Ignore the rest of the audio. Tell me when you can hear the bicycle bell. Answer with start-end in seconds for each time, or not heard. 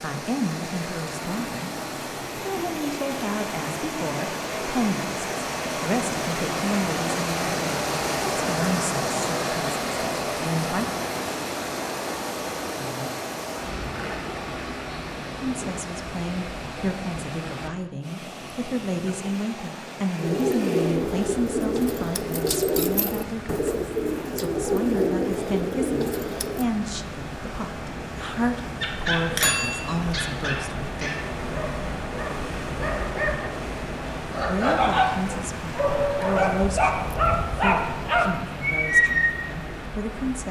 29.3-30.1.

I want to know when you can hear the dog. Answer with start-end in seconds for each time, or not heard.
28.8-39.4.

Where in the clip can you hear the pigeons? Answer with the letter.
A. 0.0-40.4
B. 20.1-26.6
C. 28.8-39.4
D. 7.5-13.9
B.